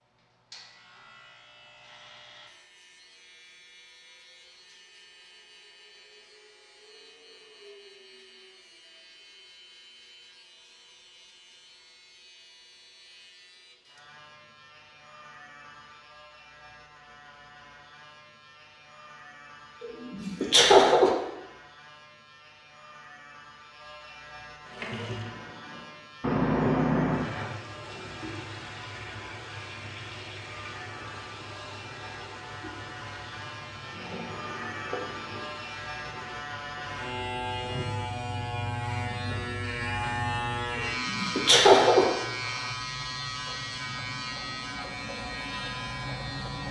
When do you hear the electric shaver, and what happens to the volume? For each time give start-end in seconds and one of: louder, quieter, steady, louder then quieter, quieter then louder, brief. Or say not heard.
0.0-46.6 louder.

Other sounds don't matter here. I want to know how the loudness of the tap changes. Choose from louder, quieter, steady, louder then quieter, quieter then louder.
quieter.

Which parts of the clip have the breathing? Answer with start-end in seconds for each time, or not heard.
not heard.